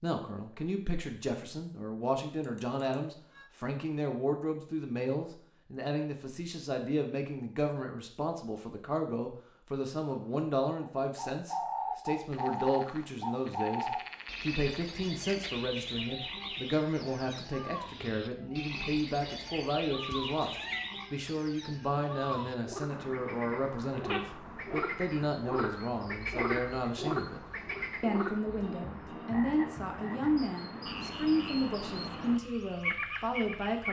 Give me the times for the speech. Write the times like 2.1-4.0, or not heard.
0.0-20.5, 21.1-27.4, 28.0-33.8.